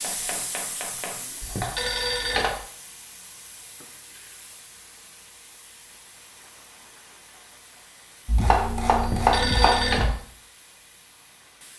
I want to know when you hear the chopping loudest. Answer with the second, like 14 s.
9 s.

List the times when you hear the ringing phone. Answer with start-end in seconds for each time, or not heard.
1.4-2.6, 8.9-10.1.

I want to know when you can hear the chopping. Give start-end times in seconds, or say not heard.
0.0-1.9, 8.2-10.2.